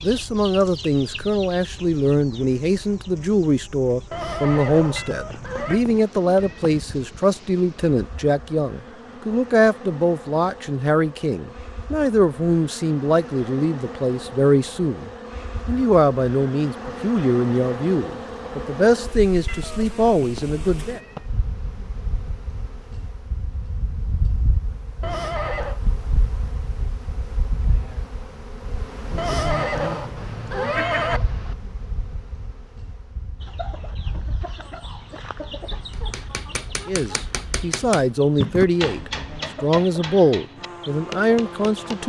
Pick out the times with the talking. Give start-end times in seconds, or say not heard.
0.0-21.0, 36.9-42.0.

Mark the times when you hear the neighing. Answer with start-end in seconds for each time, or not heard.
4.1-5.8, 25.0-25.8, 29.1-31.2.